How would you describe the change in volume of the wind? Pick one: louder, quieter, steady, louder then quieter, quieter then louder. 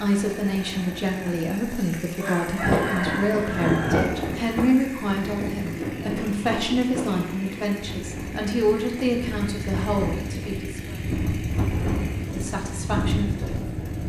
quieter then louder.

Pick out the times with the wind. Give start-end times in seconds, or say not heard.
2.5-14.0.